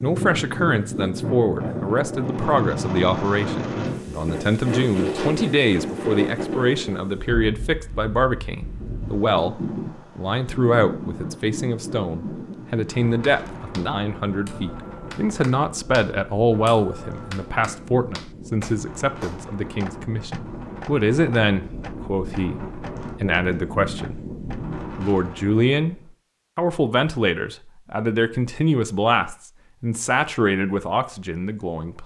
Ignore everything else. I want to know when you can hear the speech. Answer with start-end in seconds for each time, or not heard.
0.0-24.2, 24.9-25.9, 26.6-32.0.